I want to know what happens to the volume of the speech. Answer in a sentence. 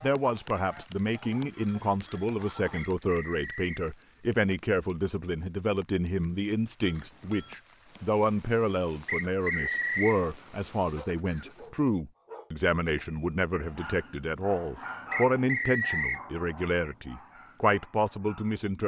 The loudness of the speech stays about the same.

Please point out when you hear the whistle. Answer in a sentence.
You can hear the whistle from 2.7 to 3.9 s, from 9.1 to 10.2 s and from 15.1 to 16.2 s.